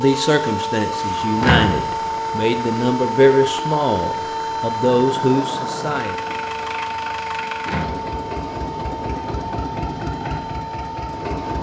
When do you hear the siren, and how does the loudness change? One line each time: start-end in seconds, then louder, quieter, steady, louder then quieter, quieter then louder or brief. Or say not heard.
0.0-11.5 quieter.